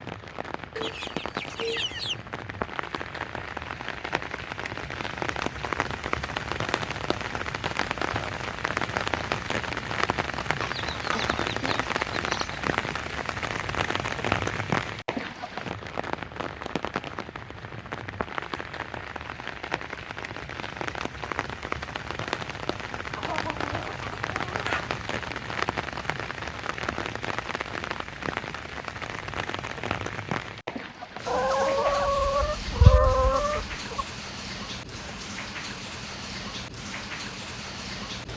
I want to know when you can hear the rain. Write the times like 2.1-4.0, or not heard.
0.0-38.3.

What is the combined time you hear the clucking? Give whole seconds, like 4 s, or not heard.
8 s.